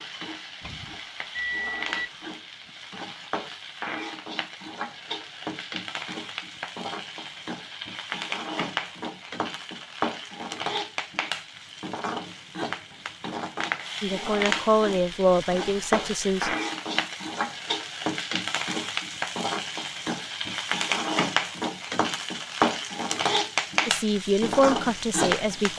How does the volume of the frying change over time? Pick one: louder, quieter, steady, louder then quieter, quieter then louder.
louder.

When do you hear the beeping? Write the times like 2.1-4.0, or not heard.
0.6-2.1.